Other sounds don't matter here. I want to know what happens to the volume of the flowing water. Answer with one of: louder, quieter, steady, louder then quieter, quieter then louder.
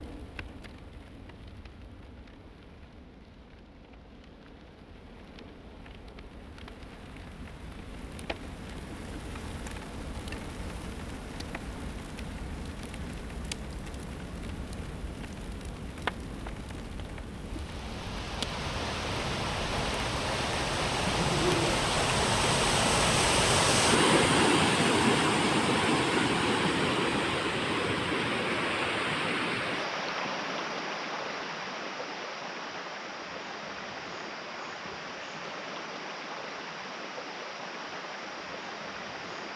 louder then quieter.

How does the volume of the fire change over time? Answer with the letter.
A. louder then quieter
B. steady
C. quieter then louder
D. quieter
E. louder
E.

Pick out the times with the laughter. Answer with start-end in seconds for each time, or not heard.
21.1-21.8.